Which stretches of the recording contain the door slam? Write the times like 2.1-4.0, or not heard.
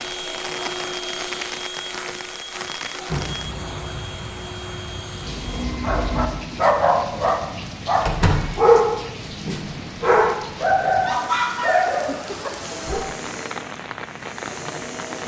2.9-3.6, 8.1-8.6.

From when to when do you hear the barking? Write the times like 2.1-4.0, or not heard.
5.2-13.1.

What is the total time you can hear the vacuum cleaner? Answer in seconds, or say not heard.
8 s.